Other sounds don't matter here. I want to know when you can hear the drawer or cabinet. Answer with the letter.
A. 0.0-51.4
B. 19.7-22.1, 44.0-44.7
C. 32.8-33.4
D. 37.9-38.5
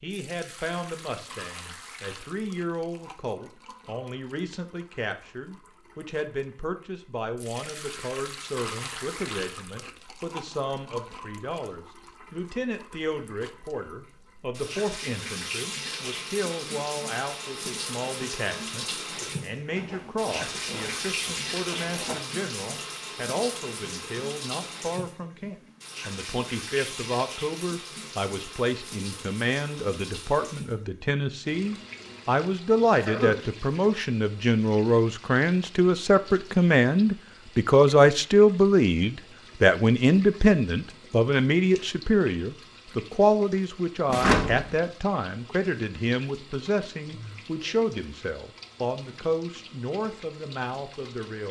B.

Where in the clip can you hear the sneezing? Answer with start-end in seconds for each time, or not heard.
32.8-33.4.